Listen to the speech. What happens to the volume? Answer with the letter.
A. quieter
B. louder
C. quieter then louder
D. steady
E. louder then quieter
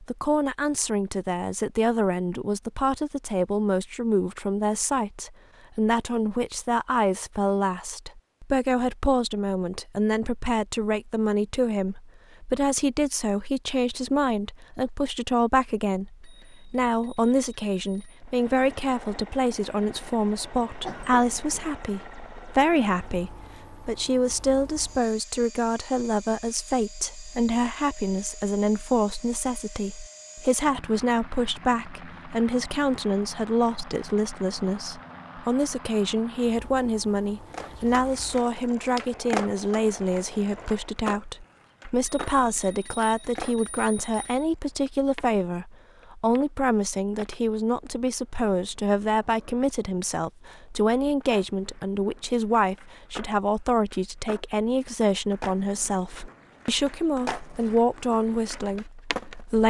D.